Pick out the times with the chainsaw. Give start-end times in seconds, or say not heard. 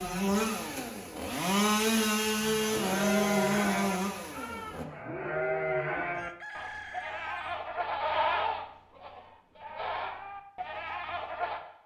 0.0-4.8.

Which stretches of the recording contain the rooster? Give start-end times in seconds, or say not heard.
6.1-7.6.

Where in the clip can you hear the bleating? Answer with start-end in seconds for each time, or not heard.
2.4-11.6.